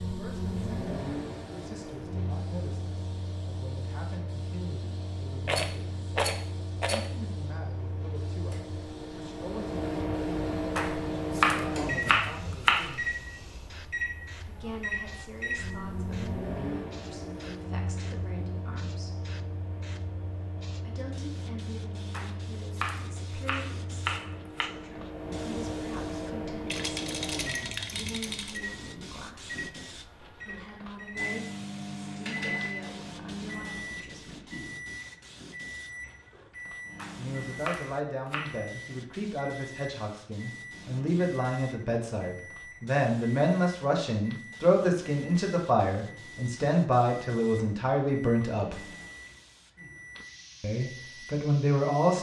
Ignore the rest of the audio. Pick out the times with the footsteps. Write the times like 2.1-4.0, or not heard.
not heard.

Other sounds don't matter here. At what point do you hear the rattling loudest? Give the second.
6 s.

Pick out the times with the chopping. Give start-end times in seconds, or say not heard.
10.8-12.9, 22.1-24.7, 37.0-38.6.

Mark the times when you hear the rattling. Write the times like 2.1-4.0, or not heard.
5.5-7.1, 26.6-28.6.